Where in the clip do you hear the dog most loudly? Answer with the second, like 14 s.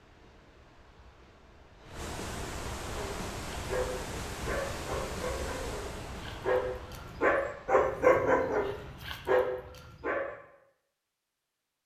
8 s.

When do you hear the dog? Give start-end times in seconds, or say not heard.
2.9-10.3.